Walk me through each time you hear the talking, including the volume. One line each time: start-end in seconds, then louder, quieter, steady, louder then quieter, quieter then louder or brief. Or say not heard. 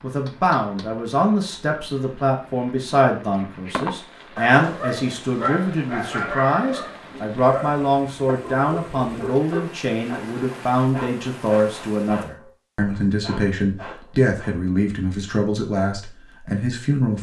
0.0-17.1 steady.